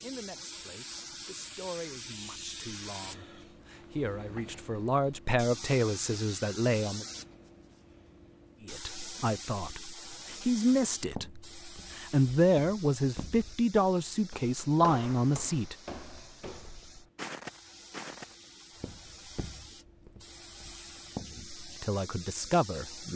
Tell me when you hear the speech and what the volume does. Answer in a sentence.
The speech can be heard from 0.0 to 7.0 s, getting louder; from 8.7 to 15.8 s, getting louder; and briefly from 21.4 to 23.1 s.